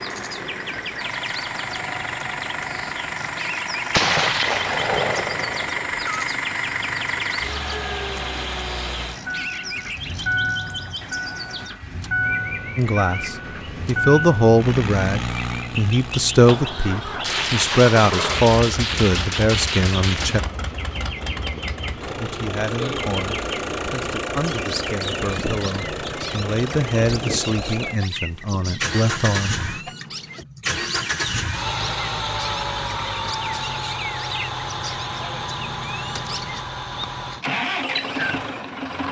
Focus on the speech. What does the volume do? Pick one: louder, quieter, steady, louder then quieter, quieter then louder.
quieter.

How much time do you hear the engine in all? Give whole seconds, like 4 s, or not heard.
39 s.